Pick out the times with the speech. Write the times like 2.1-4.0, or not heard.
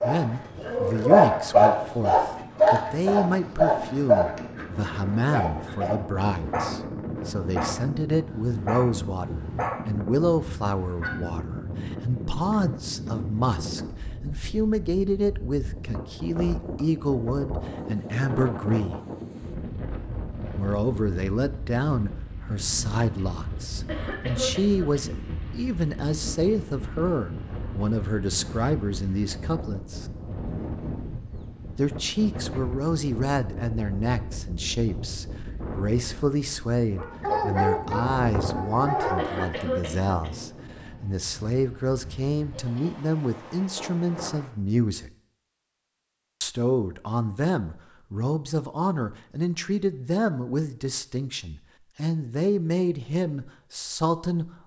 0.0-19.0, 20.6-30.1, 31.8-45.1, 46.4-54.5.